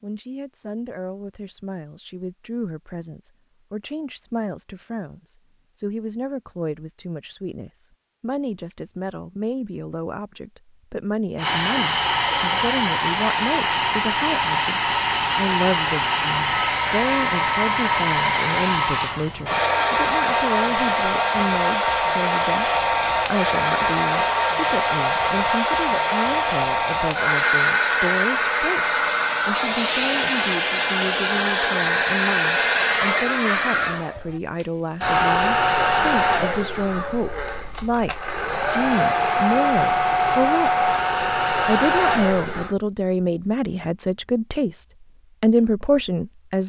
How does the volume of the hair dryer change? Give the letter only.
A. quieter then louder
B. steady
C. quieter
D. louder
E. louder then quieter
B.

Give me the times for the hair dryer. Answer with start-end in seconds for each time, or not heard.
11.3-42.8.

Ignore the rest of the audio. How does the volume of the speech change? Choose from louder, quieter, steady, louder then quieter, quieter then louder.
louder.